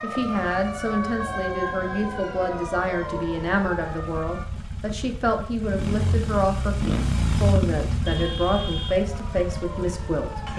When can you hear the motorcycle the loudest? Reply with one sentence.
The loudest moment of the motorcycle is at 7 seconds.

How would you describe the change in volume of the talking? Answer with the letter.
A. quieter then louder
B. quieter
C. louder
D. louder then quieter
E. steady
E.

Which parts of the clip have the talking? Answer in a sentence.
You can hear the talking from 0.0 to 10.4 s.